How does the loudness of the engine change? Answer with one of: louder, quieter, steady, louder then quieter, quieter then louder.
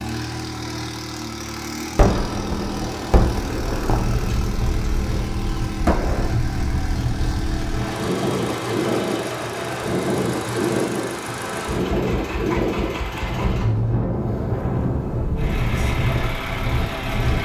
steady.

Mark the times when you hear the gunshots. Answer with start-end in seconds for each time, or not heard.
1.9-6.3.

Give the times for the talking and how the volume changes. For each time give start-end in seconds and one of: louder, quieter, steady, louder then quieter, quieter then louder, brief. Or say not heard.
not heard.